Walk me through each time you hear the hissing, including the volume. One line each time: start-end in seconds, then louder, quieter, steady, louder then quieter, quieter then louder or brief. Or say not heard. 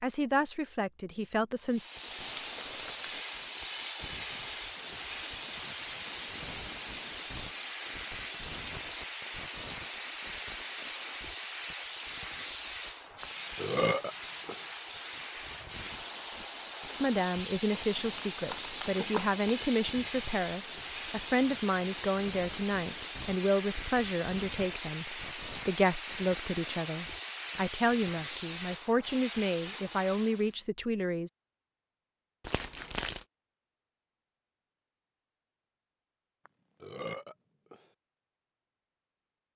1.6-30.5 steady.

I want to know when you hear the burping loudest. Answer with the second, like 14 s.
14 s.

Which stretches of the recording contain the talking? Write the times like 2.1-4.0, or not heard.
0.0-1.9, 17.0-31.3.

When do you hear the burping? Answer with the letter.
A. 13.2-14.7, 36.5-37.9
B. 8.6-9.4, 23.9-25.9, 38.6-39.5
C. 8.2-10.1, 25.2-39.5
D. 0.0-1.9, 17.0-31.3
A.